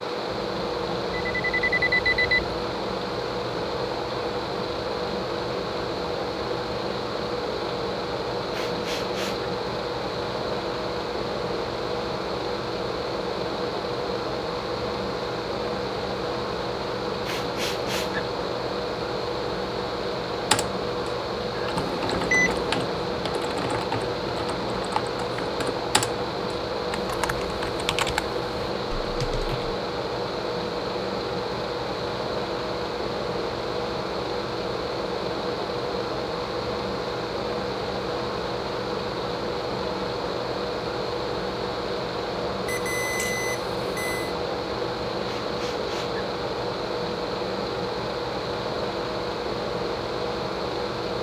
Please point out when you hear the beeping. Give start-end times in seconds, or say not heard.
1.4-2.4, 21.8-22.9, 42.6-44.3.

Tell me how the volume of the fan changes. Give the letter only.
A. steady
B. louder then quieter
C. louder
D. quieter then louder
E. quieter
A.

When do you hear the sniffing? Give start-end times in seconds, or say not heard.
8.5-9.5, 17.2-18.2, 45.2-46.2.